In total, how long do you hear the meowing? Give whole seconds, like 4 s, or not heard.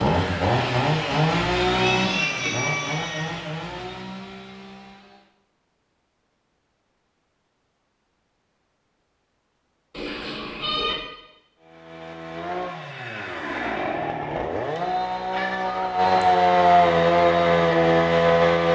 4 s.